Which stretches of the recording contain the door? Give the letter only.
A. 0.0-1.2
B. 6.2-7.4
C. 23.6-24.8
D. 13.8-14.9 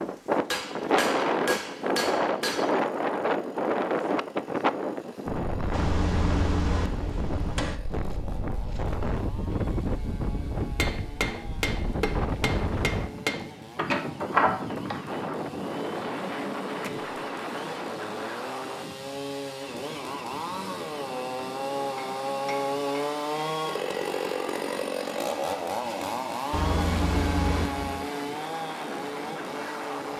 D.